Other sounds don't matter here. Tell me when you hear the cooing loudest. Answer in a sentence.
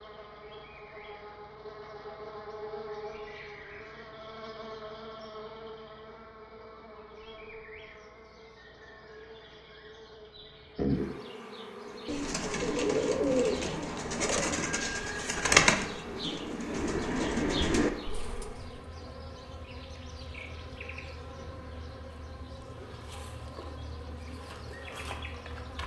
The volume of the cooing peaks at 16 seconds.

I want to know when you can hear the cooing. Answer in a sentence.
The cooing can be heard from 11.9 to 18.8 s.